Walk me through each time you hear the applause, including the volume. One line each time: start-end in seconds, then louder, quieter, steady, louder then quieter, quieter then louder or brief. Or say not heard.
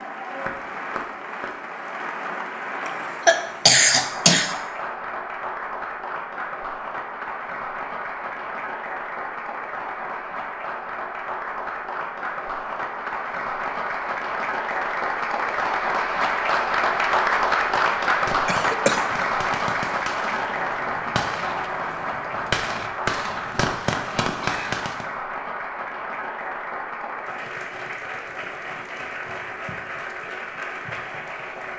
0.0-31.7 louder then quieter.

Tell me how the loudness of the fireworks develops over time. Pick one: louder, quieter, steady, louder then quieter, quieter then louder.
louder.